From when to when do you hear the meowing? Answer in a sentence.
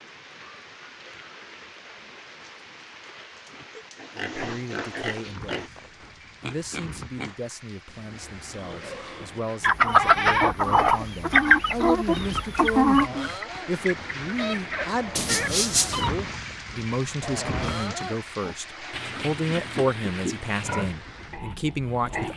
The meowing can be heard from 15.2 to 16.1 s.